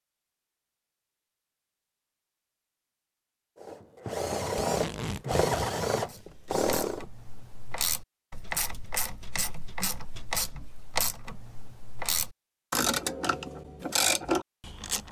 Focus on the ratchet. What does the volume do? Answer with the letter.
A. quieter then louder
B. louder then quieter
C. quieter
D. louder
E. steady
D.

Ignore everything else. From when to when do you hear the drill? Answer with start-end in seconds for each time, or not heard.
3.5-7.0.